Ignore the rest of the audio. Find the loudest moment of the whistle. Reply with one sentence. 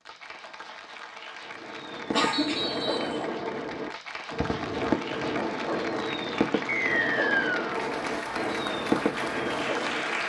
The loudest moment of the whistle is at 7 seconds.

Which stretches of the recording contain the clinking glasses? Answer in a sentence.
You can't hear the clinking glasses here.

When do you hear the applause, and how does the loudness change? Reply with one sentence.
The applause can be heard from 0.0 to 10.2 s, getting louder.